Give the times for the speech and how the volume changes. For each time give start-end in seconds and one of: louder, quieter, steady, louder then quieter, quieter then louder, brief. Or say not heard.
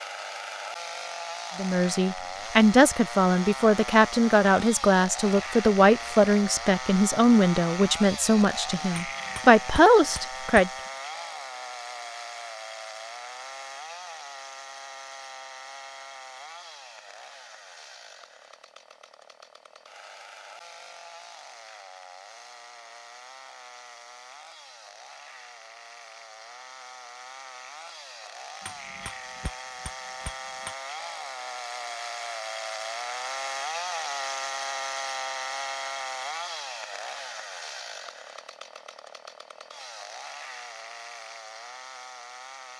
1.6-10.7 steady.